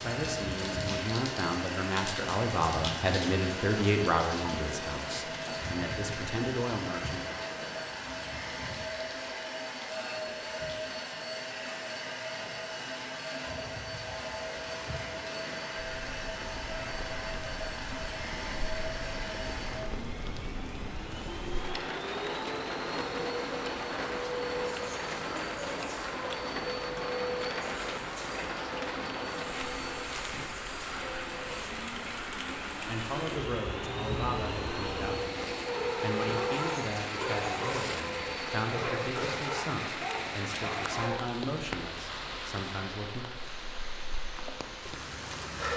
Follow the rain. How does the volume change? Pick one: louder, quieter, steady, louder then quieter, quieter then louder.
quieter then louder.